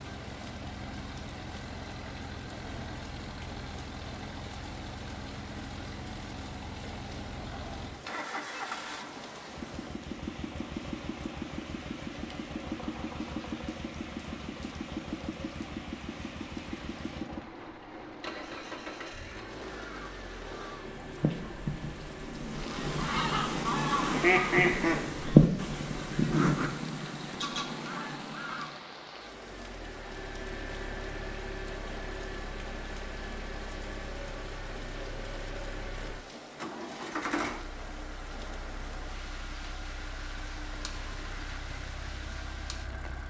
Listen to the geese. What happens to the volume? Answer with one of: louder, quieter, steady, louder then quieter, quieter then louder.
louder then quieter.